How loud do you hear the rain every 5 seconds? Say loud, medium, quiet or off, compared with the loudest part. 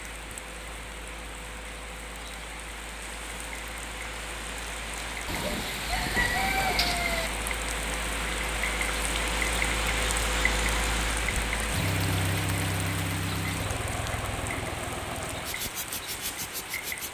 medium, loud, loud, medium.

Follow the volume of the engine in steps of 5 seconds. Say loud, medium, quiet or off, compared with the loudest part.
quiet, medium, loud, medium.